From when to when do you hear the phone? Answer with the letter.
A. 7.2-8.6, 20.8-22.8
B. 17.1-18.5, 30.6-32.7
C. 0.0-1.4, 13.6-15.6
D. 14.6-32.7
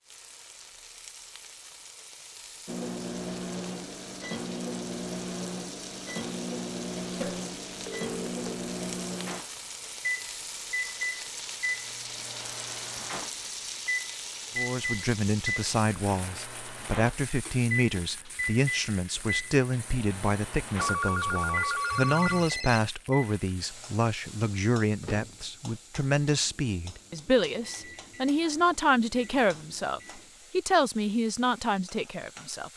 A.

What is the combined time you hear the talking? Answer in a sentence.
The talking can be heard for 18 seconds in total.